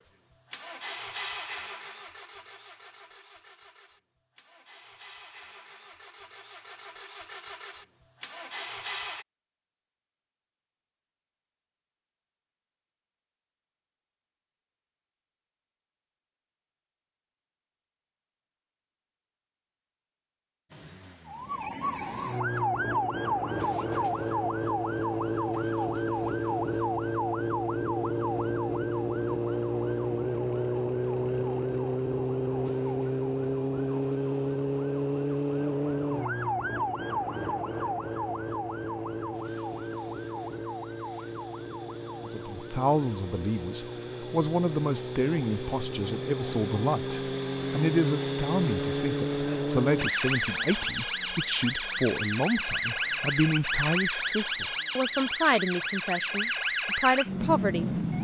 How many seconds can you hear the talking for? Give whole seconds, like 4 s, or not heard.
16 s.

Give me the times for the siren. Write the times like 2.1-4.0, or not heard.
21.2-58.1.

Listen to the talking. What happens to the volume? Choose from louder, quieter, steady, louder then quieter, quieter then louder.
steady.